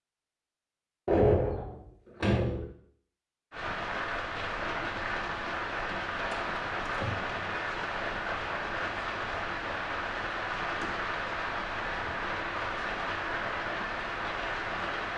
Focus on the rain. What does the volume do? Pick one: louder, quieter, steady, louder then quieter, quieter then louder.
steady.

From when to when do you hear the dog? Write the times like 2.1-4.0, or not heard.
not heard.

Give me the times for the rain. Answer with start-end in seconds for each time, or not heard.
3.5-15.1.